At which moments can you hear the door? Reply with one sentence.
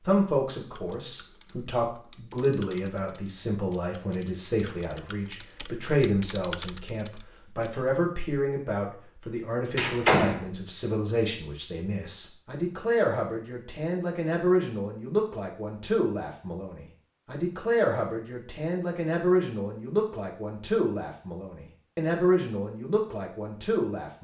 The door can be heard from 9.8 to 10.4 s.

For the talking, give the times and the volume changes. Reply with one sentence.
You can hear the talking from 0.1 to 24.2 s, at a steady volume.